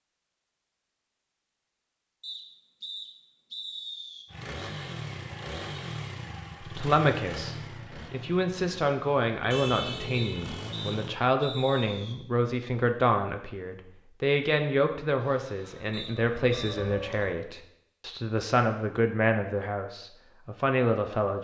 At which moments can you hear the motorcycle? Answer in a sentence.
The motorcycle can be heard from 4.3 to 11.2 s.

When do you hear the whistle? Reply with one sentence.
You can hear the whistle from 2.2 to 4.2 s, from 10.1 to 12.2 s and from 15.9 to 17.2 s.